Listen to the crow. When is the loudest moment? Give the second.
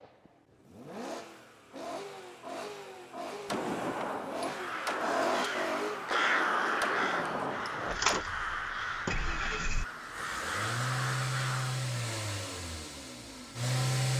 6 s.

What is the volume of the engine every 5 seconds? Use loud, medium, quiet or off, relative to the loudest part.
medium, loud, loud.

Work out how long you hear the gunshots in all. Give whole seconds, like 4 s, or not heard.
5 s.